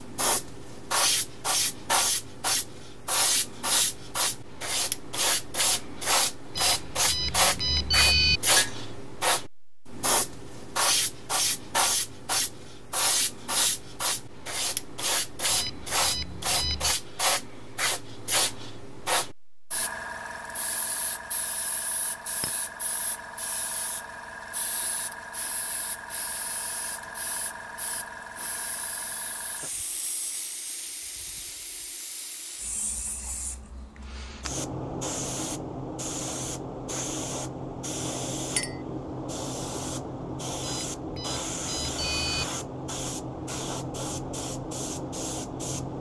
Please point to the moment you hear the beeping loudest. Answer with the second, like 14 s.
8 s.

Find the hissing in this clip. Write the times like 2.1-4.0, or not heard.
0.0-45.9.